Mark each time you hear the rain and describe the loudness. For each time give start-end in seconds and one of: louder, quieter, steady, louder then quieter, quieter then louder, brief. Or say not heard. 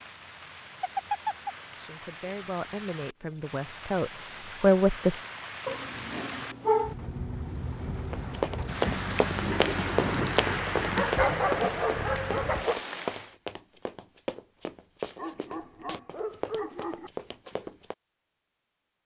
0.0-13.3 louder.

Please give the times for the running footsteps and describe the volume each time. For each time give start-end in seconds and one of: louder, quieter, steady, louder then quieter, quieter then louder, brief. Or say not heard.
8.1-17.9 quieter.